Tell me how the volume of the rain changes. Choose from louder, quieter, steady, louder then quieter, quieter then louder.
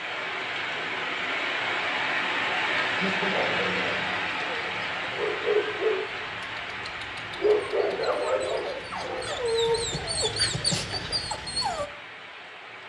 quieter.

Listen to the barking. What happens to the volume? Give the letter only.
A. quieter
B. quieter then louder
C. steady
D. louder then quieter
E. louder
E.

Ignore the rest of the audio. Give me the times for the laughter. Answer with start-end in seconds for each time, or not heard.
2.9-3.8.